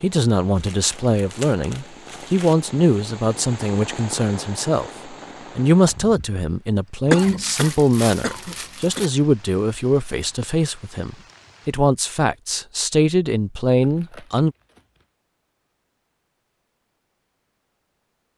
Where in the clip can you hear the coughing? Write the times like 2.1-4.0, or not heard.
7.1-9.2.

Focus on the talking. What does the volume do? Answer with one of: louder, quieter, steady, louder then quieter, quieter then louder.
steady.